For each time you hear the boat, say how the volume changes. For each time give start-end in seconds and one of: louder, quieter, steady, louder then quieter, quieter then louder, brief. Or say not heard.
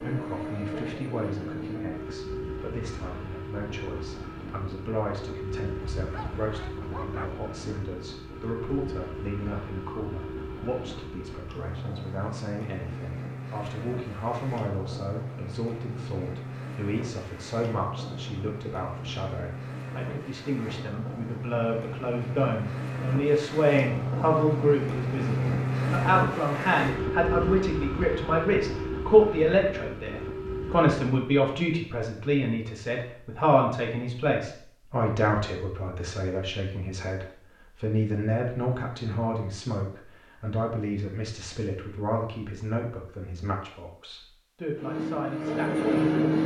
0.0-30.9 louder
44.8-46.4 brief.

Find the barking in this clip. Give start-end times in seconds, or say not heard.
6.0-7.4.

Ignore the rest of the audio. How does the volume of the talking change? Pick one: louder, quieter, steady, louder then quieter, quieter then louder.
louder then quieter.